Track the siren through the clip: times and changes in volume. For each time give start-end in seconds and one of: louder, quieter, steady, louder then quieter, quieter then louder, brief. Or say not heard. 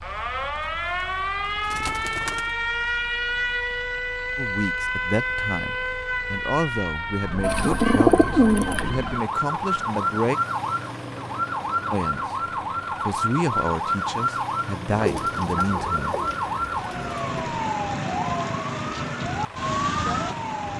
0.0-20.7 steady.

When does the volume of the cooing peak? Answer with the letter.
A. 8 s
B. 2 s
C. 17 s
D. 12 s
A.